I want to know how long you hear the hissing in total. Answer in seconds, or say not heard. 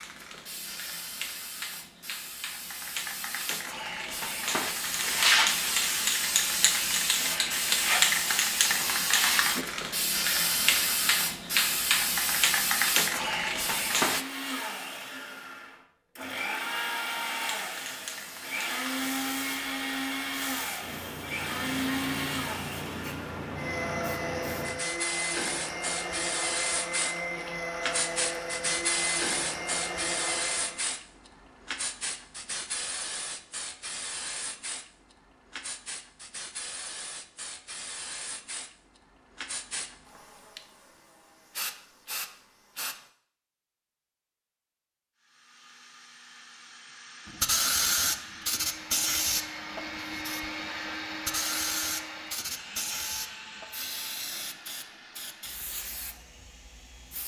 50 s.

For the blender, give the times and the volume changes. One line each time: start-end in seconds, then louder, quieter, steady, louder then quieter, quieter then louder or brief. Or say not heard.
14.0-30.9 steady
45.1-57.2 louder then quieter.